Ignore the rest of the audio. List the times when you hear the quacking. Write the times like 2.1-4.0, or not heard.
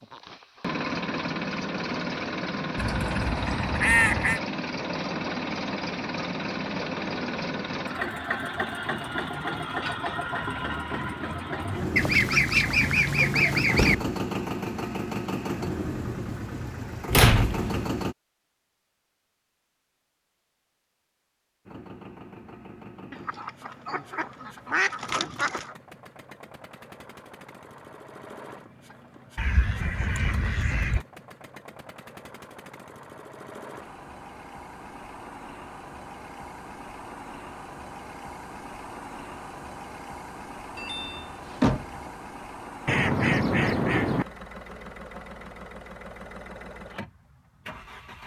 2.8-4.4, 11.9-13.9, 23.1-25.8, 29.4-31.1, 42.9-44.2.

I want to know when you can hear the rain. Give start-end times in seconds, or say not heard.
not heard.